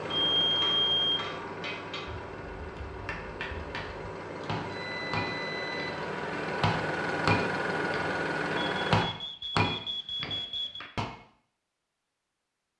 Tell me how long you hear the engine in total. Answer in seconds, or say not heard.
9 s.